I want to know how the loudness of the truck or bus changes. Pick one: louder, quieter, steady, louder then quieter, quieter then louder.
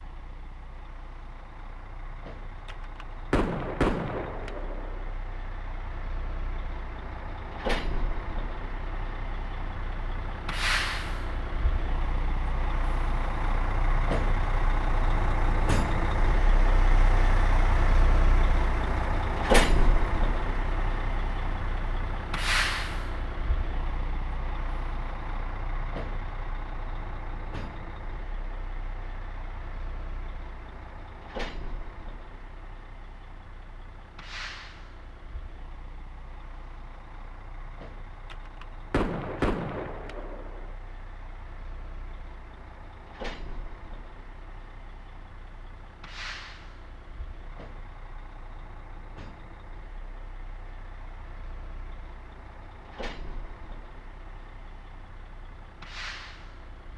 louder then quieter.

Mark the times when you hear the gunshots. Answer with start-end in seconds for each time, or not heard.
2.6-5.1, 38.3-40.8.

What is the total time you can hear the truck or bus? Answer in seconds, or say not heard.
57 s.